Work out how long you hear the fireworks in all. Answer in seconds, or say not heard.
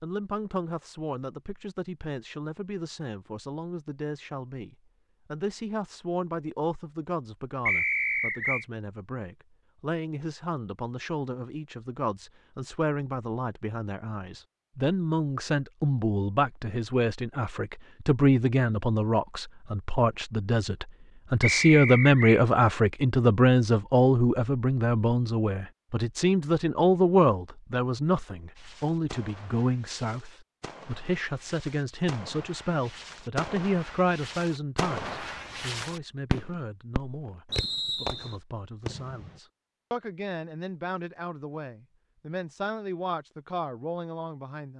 11 s.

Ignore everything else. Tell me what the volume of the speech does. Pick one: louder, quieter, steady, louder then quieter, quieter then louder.
louder then quieter.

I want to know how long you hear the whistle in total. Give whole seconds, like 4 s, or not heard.
3 s.